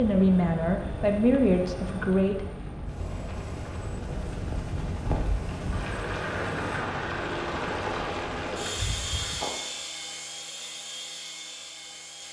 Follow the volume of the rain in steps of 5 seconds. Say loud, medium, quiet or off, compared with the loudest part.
medium, loud, off.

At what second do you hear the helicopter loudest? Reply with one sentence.
The loudest moment of the helicopter is at 8 seconds.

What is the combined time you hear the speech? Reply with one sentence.
The speech can be heard for 3 seconds in total.